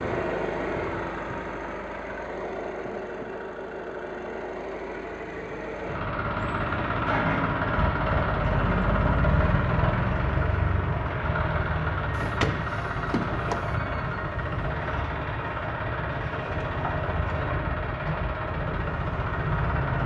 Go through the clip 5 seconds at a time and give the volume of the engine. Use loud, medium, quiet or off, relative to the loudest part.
medium, loud, loud, loud.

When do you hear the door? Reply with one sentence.
The door can be heard from 12.2 to 13.8 s.